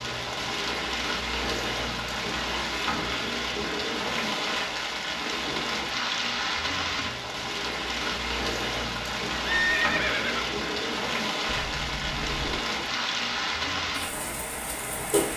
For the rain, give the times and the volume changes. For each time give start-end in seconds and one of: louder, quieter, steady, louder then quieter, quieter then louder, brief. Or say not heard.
0.0-15.3 steady.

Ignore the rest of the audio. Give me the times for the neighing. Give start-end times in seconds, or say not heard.
9.4-10.6.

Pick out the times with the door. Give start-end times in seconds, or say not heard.
11.4-12.6.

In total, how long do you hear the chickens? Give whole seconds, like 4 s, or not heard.
not heard.